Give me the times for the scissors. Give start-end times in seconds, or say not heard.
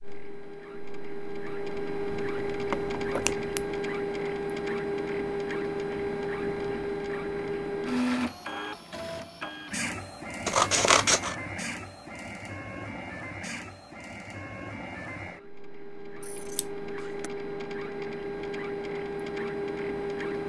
2.1-3.6, 10.4-11.3, 16.2-17.3.